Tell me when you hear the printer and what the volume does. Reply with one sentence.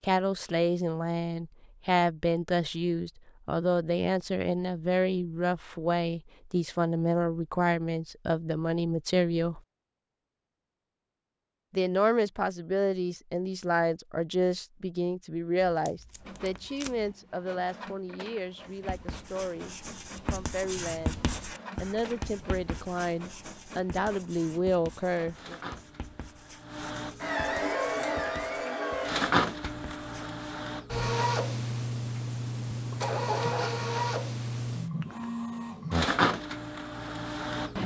You can hear the printer from 16.1 to 37.8 s, getting louder.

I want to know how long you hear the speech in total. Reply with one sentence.
The speech can be heard for 23 seconds in total.